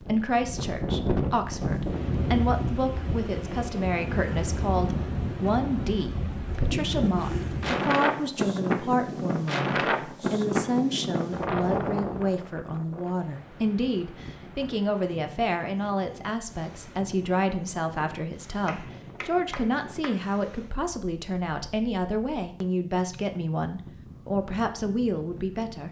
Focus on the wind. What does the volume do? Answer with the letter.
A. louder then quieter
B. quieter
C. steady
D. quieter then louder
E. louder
B.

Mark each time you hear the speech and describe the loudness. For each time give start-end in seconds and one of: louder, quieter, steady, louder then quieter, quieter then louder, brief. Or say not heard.
0.0-25.8 steady.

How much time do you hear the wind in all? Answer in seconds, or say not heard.
26 s.